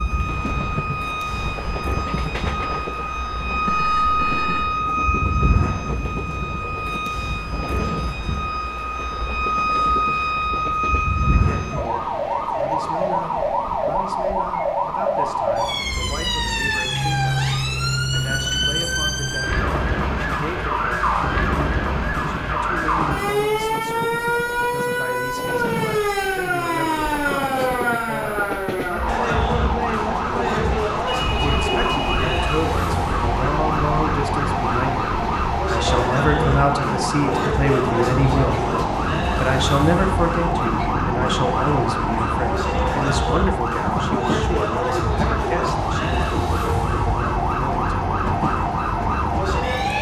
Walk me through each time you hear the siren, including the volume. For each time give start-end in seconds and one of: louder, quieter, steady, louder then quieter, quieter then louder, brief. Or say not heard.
0.0-49.9 steady.